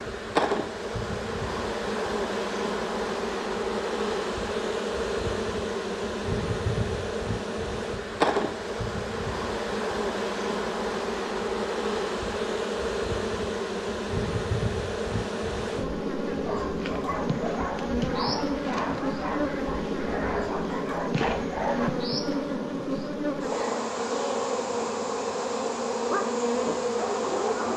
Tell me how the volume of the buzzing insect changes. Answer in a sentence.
The volume of the buzzing insect stays about the same.